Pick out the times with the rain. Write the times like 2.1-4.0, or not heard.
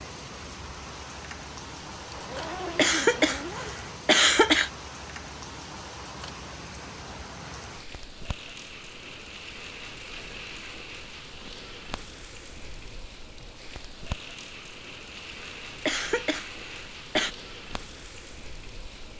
0.0-19.1.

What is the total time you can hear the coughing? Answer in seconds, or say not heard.
4 s.